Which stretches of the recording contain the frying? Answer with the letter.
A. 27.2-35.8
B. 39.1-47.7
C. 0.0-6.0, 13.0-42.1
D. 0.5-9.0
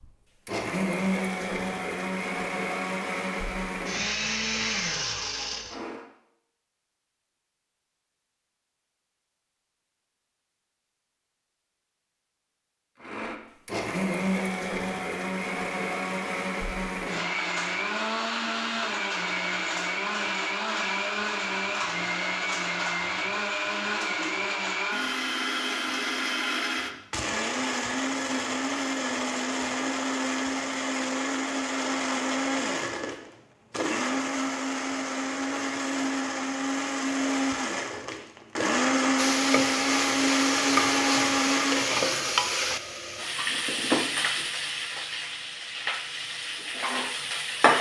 B.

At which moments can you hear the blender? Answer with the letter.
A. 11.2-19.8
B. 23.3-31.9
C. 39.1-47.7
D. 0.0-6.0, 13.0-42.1
D.